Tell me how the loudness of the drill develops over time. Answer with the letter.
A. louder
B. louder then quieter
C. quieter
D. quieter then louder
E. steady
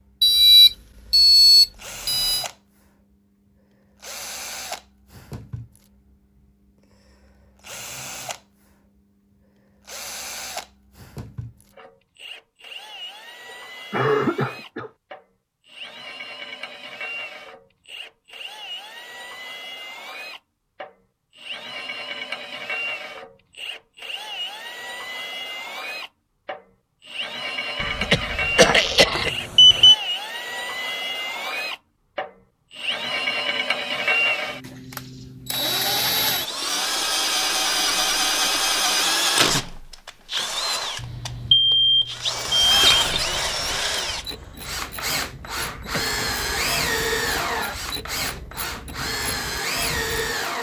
A.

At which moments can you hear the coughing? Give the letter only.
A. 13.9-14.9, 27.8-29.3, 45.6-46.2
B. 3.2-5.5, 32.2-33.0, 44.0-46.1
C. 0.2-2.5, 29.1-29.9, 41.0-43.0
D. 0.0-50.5
A.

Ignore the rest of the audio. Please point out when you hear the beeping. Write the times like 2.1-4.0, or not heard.
0.2-2.5, 29.1-29.9, 41.0-43.0.